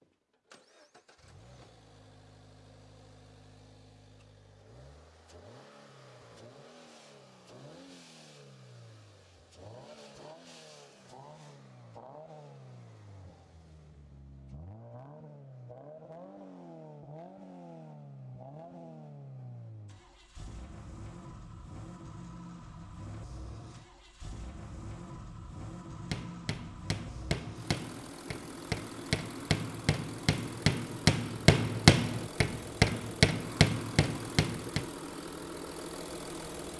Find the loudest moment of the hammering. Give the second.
32 s.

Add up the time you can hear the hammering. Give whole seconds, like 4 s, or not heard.
9 s.